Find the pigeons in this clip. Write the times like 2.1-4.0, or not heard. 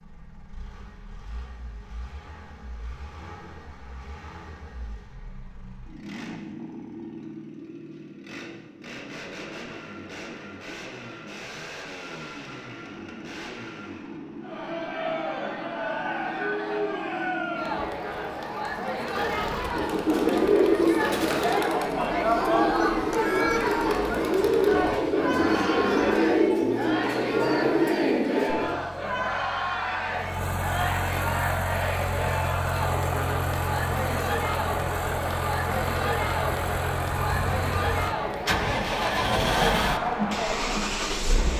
19.7-28.8.